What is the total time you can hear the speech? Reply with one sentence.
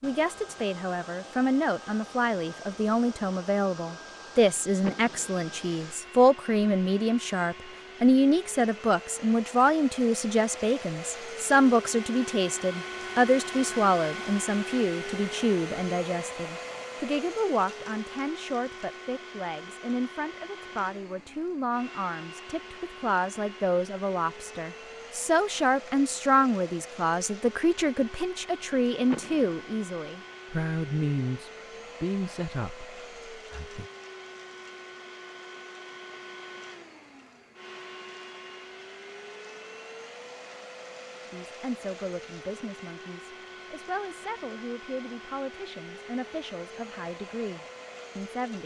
You can hear the speech for 41 seconds altogether.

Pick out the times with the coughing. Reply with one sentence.
You can't hear the coughing here.